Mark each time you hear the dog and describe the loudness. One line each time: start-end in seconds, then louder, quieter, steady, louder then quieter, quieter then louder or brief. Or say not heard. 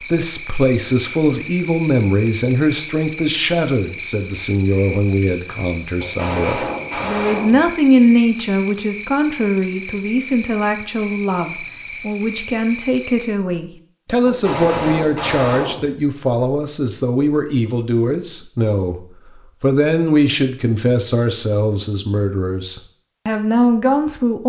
not heard.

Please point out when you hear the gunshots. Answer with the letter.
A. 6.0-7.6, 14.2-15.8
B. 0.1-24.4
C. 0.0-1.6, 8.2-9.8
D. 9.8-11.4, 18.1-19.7
A.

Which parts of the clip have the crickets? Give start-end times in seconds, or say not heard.
0.0-13.4.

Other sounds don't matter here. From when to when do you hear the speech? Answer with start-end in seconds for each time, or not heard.
0.1-24.4.